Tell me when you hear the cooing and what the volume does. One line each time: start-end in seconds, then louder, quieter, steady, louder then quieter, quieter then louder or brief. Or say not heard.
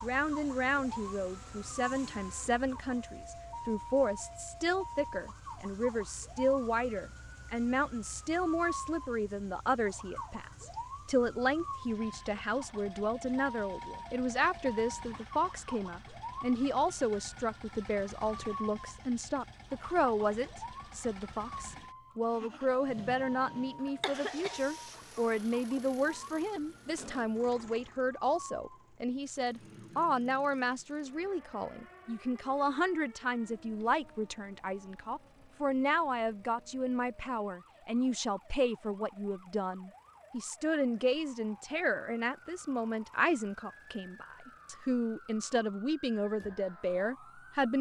not heard.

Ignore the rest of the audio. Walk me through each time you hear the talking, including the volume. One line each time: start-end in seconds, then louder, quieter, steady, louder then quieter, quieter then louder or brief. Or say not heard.
0.0-47.7 steady.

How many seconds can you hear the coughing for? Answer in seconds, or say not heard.
2 s.